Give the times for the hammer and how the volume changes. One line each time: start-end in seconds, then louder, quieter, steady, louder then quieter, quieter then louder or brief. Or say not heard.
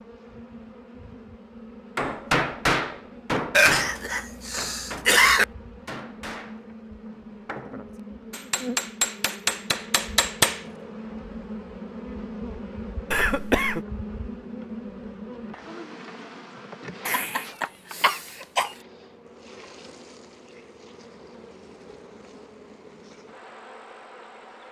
1.9-10.6 quieter then louder.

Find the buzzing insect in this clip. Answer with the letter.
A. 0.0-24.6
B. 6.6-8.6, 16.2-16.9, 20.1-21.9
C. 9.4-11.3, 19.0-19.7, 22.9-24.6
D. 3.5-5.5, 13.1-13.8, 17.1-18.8
A.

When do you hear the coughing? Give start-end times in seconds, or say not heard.
3.5-5.5, 13.1-13.8, 17.1-18.8.